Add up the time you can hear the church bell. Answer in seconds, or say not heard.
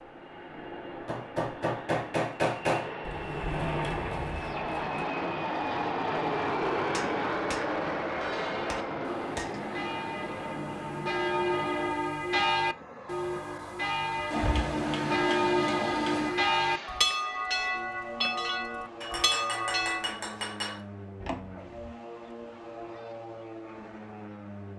12 s.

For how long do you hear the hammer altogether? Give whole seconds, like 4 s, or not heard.
7 s.